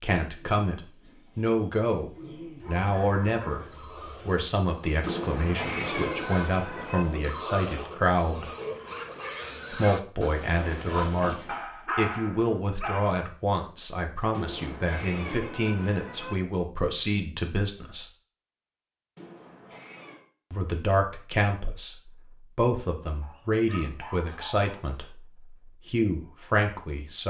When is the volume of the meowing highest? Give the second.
6 s.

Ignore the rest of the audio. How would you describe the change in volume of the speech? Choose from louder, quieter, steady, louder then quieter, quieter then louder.
steady.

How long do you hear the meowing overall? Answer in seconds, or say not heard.
5 s.